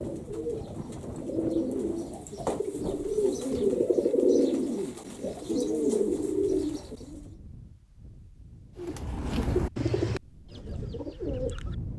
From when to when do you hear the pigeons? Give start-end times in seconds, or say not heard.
0.0-7.3, 8.8-11.8.